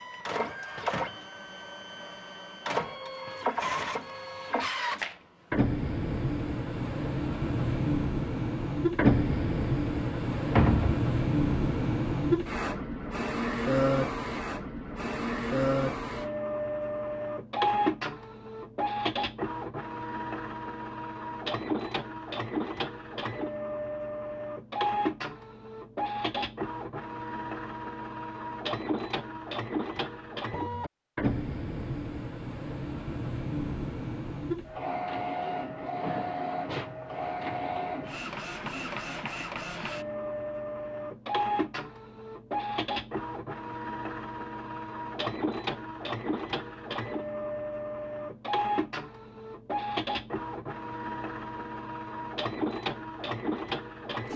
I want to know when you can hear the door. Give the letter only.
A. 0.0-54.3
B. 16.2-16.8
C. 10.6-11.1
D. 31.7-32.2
C.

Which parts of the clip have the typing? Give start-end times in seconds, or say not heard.
not heard.